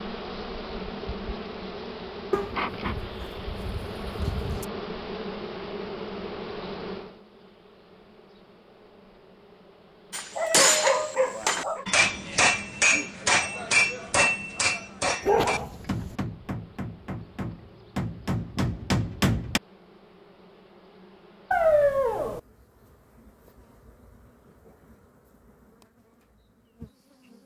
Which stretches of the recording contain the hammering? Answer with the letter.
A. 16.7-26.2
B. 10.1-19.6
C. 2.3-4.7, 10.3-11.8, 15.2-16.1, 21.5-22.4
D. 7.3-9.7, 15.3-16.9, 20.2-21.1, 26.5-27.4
B.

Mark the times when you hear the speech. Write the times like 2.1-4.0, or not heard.
not heard.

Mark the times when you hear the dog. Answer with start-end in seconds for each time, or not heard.
2.3-4.7, 10.3-11.8, 15.2-16.1, 21.5-22.4.